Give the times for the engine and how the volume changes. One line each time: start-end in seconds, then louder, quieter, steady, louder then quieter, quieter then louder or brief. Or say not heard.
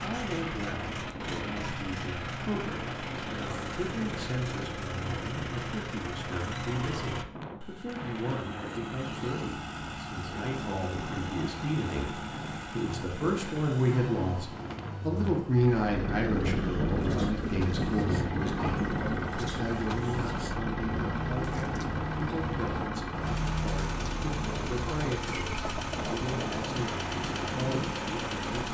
0.0-28.6 steady.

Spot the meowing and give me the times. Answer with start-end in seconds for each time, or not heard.
not heard.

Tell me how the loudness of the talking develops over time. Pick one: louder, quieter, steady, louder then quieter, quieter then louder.
louder then quieter.